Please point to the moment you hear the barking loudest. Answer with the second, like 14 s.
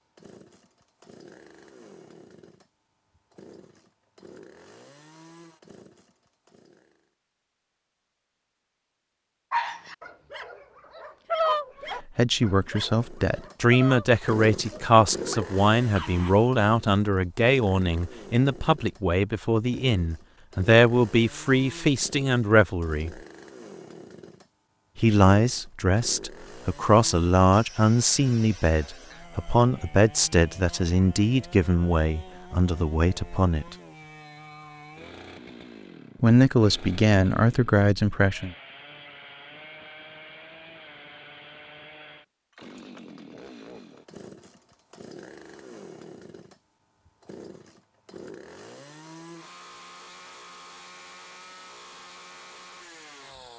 11 s.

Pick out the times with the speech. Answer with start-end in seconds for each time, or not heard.
12.2-23.1, 24.9-33.8, 36.2-38.5.